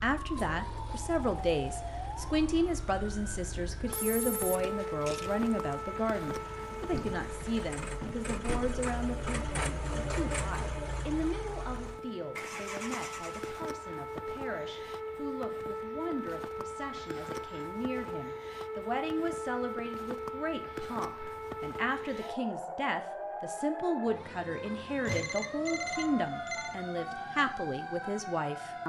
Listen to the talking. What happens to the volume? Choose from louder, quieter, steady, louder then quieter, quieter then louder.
quieter then louder.